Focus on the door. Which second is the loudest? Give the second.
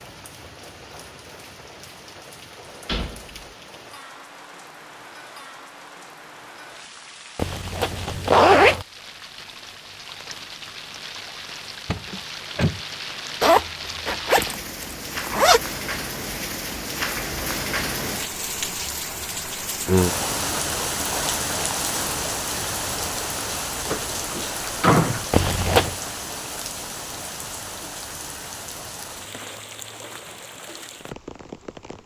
25 s.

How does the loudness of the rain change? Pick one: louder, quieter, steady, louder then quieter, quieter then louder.
louder then quieter.